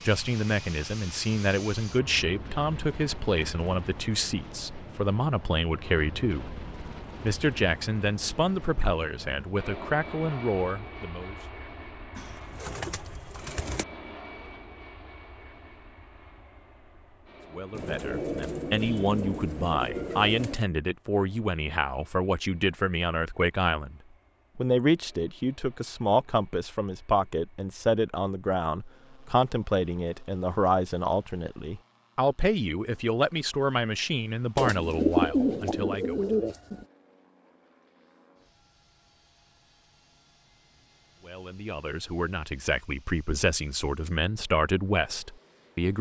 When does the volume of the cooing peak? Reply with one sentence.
The volume of the cooing peaks at 35 seconds.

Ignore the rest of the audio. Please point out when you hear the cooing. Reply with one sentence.
You can hear the cooing from 12.2 to 13.8 s, from 17.7 to 20.6 s and from 34.5 to 36.9 s.